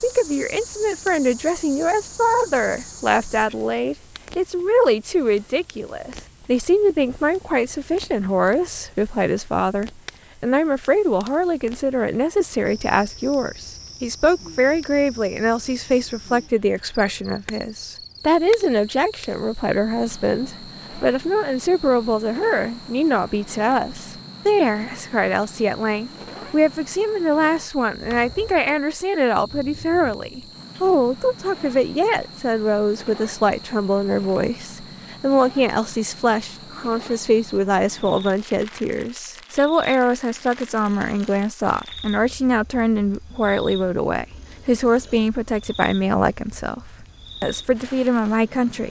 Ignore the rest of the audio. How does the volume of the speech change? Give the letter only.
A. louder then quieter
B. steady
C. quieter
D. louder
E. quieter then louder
B.